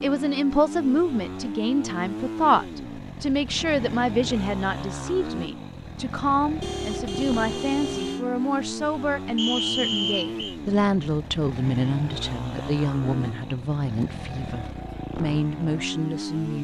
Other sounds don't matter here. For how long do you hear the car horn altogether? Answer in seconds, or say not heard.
2 s.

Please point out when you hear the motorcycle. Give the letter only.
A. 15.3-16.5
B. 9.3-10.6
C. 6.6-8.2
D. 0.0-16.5
D.